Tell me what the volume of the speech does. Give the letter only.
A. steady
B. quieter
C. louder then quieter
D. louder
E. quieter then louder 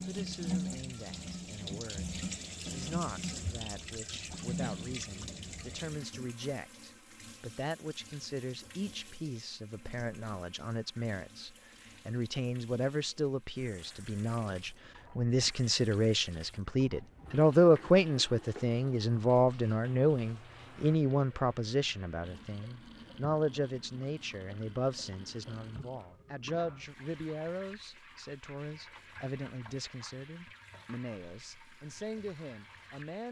C.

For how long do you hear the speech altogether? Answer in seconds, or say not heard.
33 s.